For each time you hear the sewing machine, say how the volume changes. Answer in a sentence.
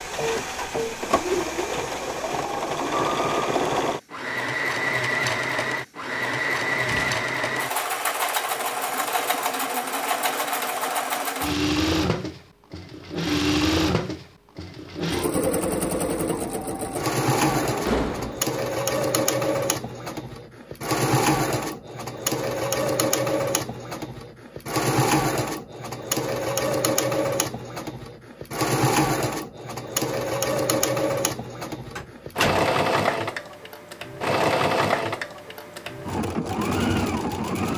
The sewing machine can be heard from 0.0 to 37.7 s, at a steady volume.